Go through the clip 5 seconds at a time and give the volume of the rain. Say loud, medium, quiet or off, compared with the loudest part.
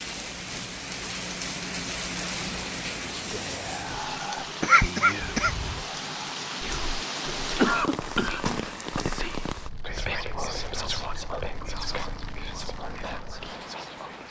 loud, loud, medium.